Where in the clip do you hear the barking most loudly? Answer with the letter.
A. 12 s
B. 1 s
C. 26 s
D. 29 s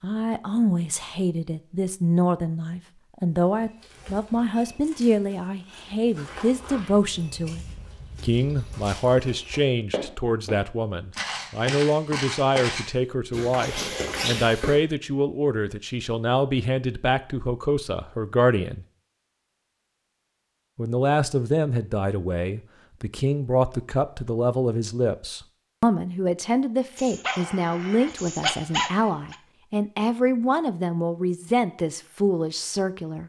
D.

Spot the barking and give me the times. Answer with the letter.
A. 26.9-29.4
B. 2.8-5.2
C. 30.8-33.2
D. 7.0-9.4
A.